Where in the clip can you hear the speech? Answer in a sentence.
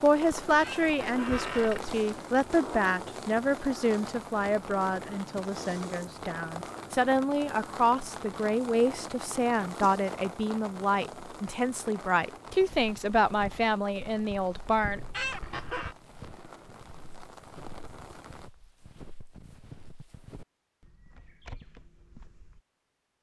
The speech can be heard from 0.0 to 15.0 s.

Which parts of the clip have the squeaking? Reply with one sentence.
The squeaking can be heard from 0.5 to 2.0 s and from 14.9 to 15.9 s.